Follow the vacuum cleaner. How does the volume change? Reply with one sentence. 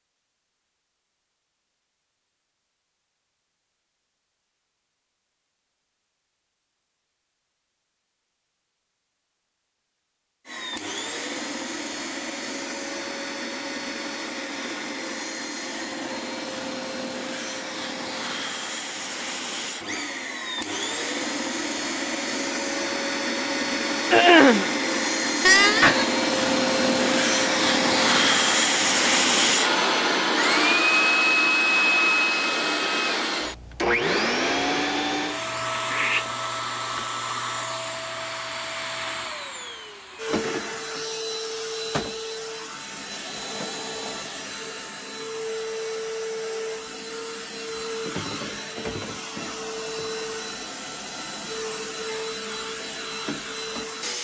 The volume of the vacuum cleaner goes up, then down.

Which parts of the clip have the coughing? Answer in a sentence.
You can hear the coughing from 24.1 to 24.7 s.